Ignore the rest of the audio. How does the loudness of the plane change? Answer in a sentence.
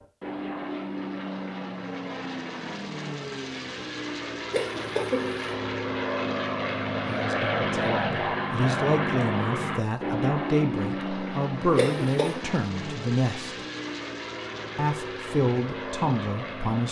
The volume of the plane goes up, then down.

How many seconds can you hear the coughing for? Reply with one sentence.
You can hear the coughing for 2 seconds altogether.